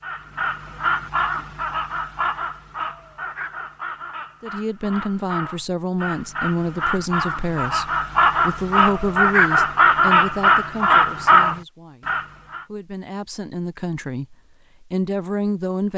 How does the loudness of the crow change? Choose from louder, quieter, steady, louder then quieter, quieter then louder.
quieter then louder.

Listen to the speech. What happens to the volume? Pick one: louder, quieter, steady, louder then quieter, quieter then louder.
quieter then louder.